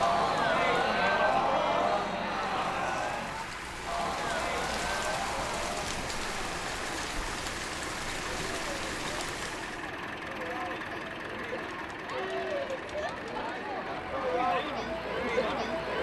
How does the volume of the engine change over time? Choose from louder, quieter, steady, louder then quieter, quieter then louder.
steady.